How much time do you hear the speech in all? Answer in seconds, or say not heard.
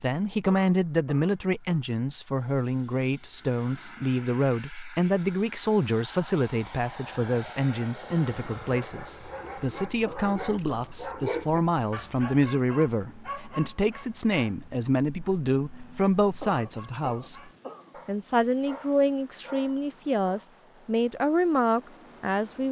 22 s.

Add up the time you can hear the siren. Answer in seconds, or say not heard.
not heard.